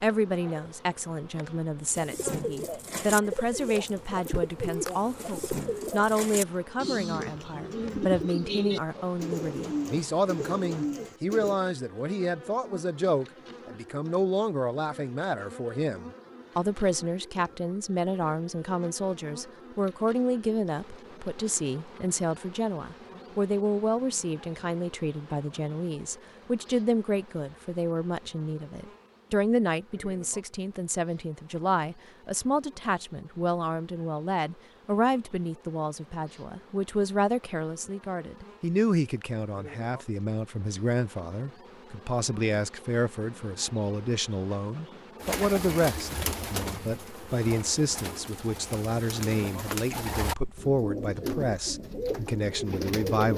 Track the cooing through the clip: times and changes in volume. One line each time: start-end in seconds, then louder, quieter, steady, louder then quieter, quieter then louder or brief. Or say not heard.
1.9-11.6 steady
45.2-53.3 quieter then louder.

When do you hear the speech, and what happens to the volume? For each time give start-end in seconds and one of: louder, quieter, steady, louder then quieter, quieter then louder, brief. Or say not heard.
0.0-53.3 steady.